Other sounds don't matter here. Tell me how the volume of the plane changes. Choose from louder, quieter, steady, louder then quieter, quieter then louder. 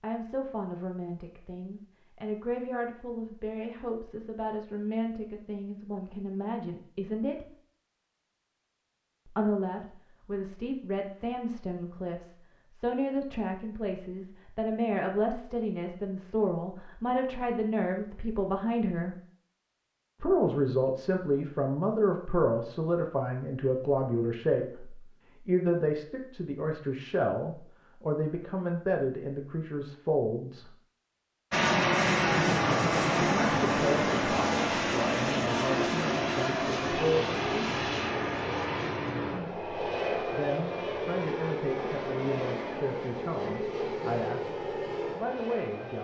quieter.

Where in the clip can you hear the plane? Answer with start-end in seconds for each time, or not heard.
31.5-46.0.